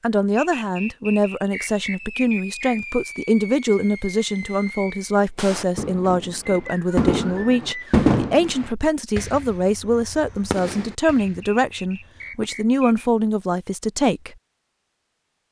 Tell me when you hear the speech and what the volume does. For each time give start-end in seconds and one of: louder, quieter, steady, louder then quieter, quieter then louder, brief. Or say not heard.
0.0-14.3 steady.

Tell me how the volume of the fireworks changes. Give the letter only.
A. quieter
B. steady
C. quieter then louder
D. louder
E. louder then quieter
E.